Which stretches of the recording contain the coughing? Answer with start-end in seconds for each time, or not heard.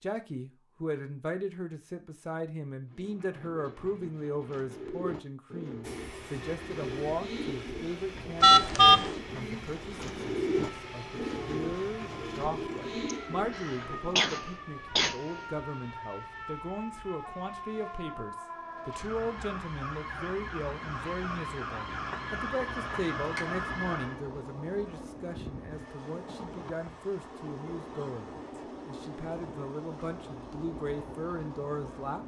13.1-15.4.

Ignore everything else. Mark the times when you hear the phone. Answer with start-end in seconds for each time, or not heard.
8.4-9.2, 21.9-23.4.